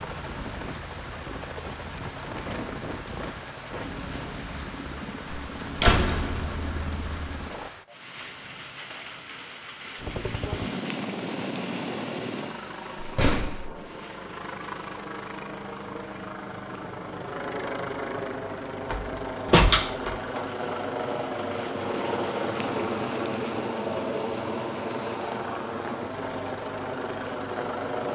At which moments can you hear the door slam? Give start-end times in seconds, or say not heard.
5.5-7.5, 12.9-13.8, 18.9-20.4.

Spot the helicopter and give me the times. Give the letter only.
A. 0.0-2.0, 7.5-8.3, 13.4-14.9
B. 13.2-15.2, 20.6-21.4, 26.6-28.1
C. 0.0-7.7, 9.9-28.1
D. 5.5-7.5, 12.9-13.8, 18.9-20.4
C.